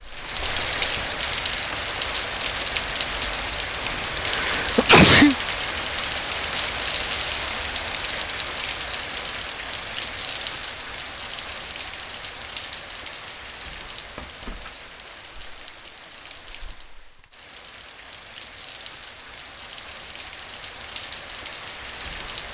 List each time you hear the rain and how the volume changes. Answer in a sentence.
You can hear the rain from 0.0 to 22.4 s, getting quieter.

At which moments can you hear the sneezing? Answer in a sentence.
You can hear the sneezing from 3.9 to 5.3 s.